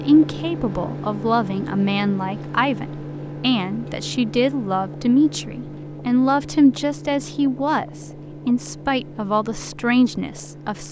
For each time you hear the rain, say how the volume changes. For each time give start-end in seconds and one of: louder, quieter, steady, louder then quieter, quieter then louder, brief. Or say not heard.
not heard.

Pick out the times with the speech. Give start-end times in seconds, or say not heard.
0.0-10.8.